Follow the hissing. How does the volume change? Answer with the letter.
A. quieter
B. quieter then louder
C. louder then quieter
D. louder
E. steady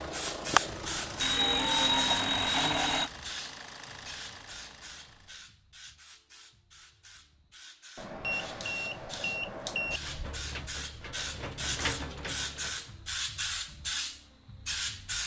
B.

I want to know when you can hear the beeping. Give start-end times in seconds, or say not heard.
1.2-3.1, 8.0-10.0.